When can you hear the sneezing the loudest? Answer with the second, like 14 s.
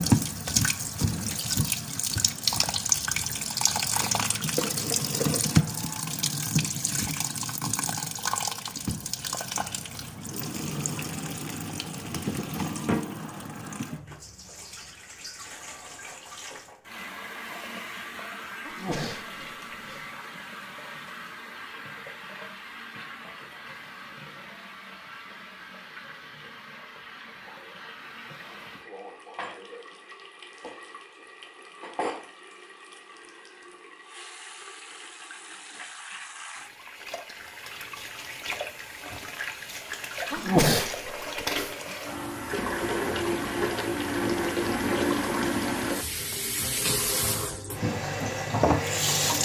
41 s.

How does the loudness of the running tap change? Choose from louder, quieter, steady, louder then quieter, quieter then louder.
quieter then louder.